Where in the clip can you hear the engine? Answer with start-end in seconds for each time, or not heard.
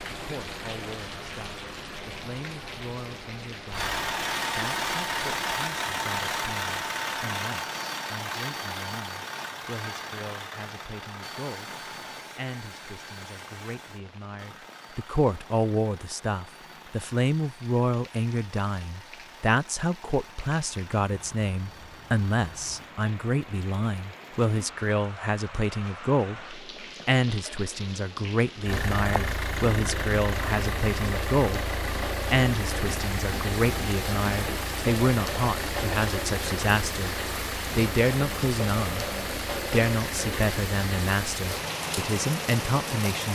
3.7-22.9, 28.6-43.2.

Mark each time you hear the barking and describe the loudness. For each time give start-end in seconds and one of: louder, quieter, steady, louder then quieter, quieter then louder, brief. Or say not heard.
not heard.